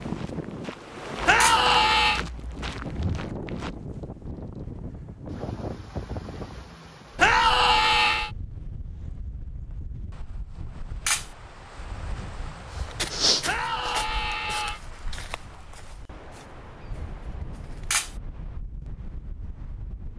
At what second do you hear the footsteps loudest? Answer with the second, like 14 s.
13 s.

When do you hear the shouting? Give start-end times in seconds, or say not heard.
1.2-2.2, 7.2-8.3, 13.4-14.8.